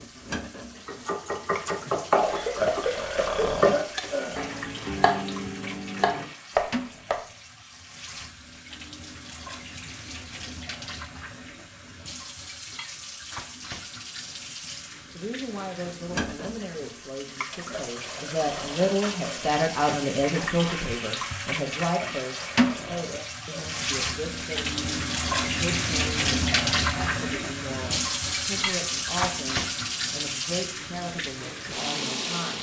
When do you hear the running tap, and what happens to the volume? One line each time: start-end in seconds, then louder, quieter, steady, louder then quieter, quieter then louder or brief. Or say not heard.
0.0-32.5 louder.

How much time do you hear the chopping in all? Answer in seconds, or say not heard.
6 s.